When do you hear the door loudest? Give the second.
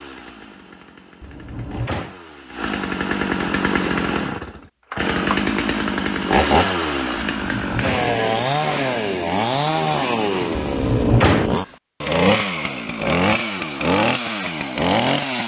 11 s.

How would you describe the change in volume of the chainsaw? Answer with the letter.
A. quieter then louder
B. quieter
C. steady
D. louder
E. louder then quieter
D.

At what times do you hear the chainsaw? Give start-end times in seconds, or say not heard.
0.0-15.4.